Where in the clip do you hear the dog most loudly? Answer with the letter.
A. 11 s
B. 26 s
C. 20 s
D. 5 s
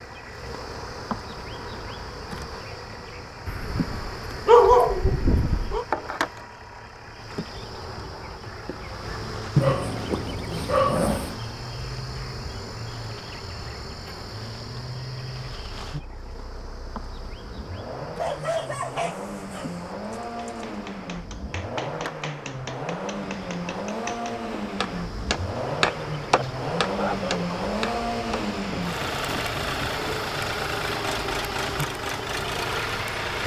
D.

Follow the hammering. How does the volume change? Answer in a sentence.
The loudness of the hammering goes up, then down.